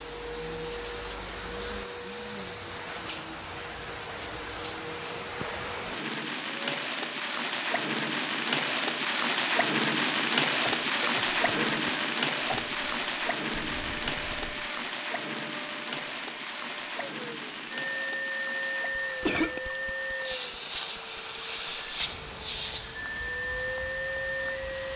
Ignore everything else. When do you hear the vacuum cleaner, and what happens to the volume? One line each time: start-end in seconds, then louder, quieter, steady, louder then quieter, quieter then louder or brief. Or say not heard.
0.0-24.9 quieter then louder.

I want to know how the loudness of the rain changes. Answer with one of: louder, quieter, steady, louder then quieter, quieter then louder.
louder then quieter.